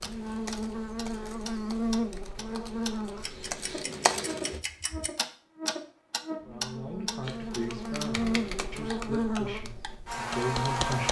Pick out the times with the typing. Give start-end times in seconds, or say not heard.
0.0-4.6, 7.2-11.0.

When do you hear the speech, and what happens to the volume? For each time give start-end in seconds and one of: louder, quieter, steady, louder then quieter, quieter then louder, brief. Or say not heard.
6.5-11.0 quieter then louder.